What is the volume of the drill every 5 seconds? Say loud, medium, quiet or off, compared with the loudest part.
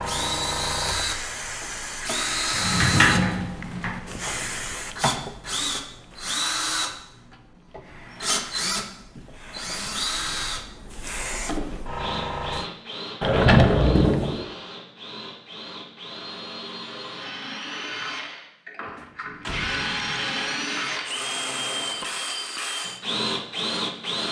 loud, loud, medium, medium, loud.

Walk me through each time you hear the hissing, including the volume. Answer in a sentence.
The hissing can be heard from 0.0 to 12.7 s, getting quieter then louder.